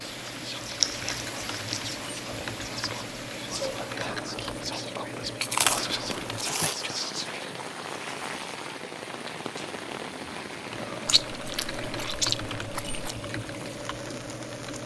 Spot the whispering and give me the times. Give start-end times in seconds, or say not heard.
0.1-7.6.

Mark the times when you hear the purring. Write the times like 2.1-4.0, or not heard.
not heard.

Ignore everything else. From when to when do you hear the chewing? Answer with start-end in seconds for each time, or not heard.
0.7-2.6, 5.4-6.8, 11.1-13.2.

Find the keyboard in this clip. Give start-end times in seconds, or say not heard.
0.0-6.5, 10.6-14.8.